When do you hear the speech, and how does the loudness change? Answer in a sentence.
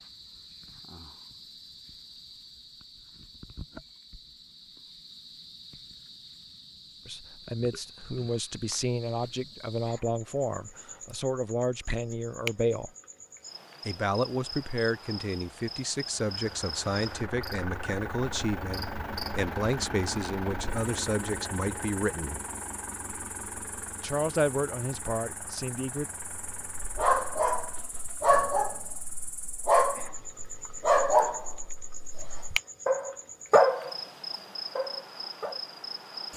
The speech can be heard from 7.0 to 12.9 s, at a steady volume; from 13.8 to 22.4 s, at a steady volume; and briefly from 24.0 to 26.1 s.